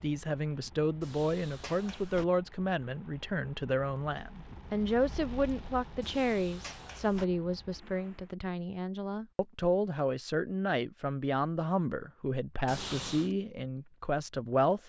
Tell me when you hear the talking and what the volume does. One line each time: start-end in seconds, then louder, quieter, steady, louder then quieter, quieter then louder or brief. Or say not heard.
0.0-14.8 steady.